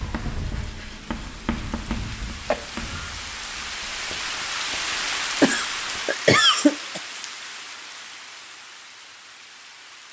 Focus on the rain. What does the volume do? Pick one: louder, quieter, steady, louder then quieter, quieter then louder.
louder then quieter.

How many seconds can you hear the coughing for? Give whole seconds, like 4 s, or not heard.
2 s.